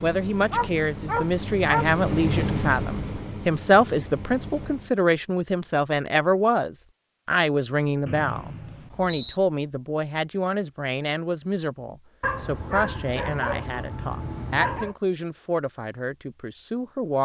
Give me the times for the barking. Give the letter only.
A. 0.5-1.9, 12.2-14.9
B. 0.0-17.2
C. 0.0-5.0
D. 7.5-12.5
A.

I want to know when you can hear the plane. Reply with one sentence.
The plane can be heard from 0.0 to 5.0 s.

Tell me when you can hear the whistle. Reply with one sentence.
You can hear the whistle from 8.1 to 9.4 s.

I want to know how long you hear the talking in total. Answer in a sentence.
You can hear the talking for 17 seconds altogether.